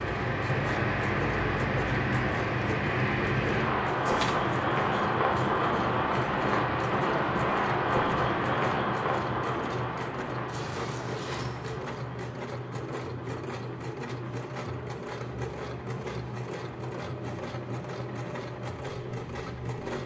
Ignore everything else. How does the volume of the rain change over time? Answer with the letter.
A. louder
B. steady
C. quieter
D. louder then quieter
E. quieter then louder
C.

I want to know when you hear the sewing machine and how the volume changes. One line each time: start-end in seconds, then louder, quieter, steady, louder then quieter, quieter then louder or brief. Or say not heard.
0.0-20.0 steady.